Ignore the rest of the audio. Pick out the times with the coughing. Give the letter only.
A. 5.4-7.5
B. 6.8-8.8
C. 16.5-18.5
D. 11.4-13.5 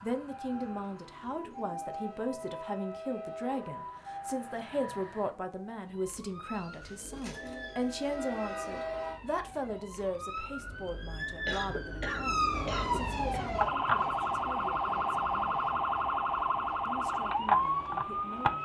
D.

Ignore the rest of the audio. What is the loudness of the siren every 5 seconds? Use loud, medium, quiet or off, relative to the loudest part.
quiet, quiet, loud, loud.